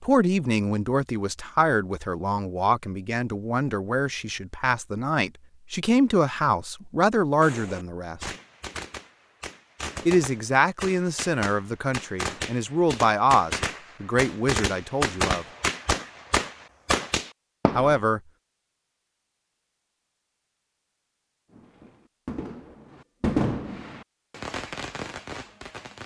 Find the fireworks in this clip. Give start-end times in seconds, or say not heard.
7.4-18.0, 21.5-26.0.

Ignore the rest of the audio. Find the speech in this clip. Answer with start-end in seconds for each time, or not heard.
0.0-8.2, 10.1-15.4, 17.8-18.2.